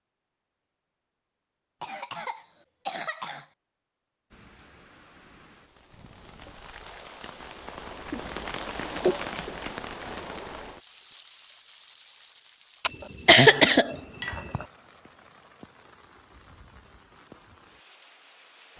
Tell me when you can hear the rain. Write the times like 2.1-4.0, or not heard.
4.3-18.7.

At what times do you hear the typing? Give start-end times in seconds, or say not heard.
not heard.